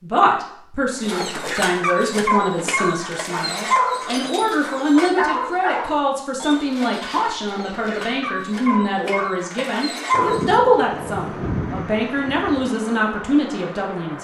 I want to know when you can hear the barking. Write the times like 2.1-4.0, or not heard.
0.9-10.6.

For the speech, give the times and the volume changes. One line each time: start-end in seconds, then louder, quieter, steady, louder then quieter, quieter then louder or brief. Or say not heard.
0.0-14.2 steady.